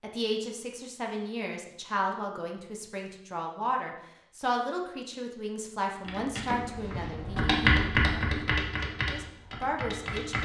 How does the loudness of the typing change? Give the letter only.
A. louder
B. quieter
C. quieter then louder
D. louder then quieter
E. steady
D.